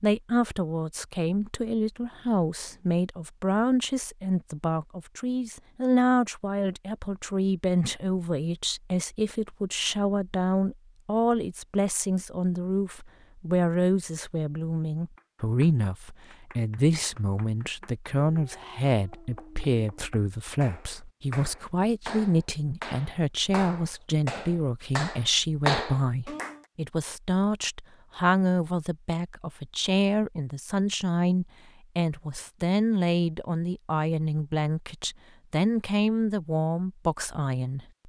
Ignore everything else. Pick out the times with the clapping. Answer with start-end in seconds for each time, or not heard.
15.2-26.6.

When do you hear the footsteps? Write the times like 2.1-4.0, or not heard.
not heard.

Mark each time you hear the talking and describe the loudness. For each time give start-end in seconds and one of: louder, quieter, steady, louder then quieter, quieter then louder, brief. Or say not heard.
0.0-37.9 steady.